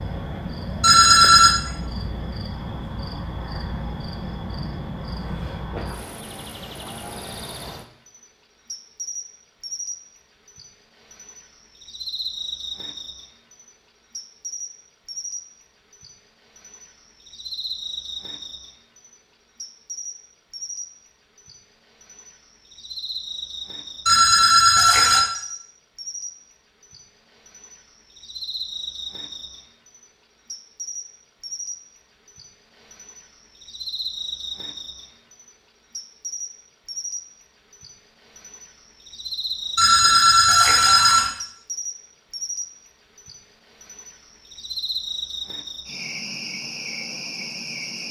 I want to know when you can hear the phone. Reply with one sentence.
You can hear the phone from 0.8 to 1.6 s, from 24.1 to 25.2 s and from 39.8 to 41.3 s.